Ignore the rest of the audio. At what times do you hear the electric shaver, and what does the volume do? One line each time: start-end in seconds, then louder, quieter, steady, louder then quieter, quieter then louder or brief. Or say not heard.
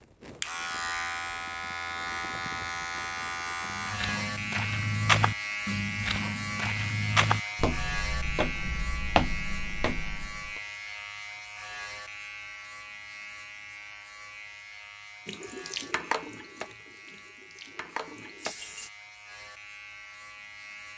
0.0-20.9 quieter.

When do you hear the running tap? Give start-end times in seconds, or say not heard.
15.2-18.9.